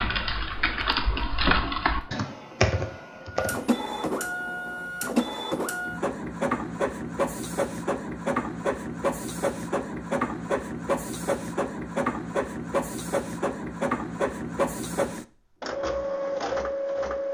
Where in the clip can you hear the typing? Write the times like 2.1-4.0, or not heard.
0.0-3.8.